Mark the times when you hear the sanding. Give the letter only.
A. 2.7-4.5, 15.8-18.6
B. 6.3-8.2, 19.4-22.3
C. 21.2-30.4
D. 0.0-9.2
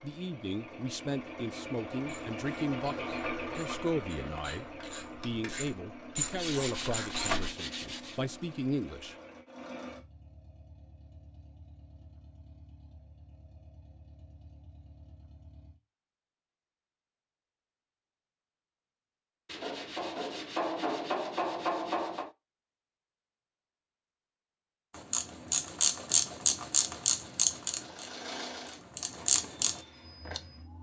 B.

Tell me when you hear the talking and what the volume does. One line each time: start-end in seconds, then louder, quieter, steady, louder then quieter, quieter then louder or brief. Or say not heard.
0.0-9.2 steady.